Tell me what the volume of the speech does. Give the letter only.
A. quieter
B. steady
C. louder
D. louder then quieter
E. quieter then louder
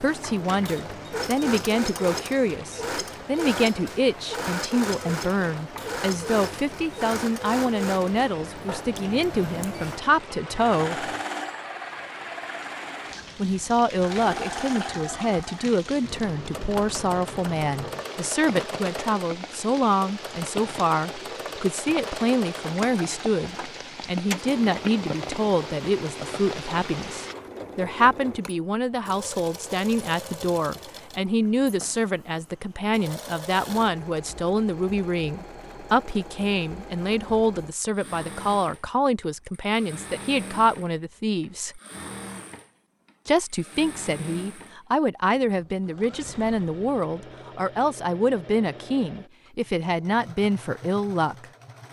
B.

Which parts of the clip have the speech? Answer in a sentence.
You can hear the speech from 0.0 to 11.1 s, from 13.3 to 41.8 s and from 43.2 to 51.5 s.